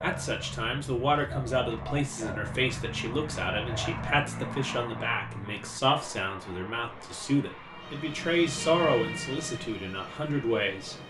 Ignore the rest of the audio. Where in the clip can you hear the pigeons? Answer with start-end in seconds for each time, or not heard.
0.0-4.2.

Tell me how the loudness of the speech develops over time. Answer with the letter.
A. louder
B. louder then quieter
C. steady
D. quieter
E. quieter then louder
C.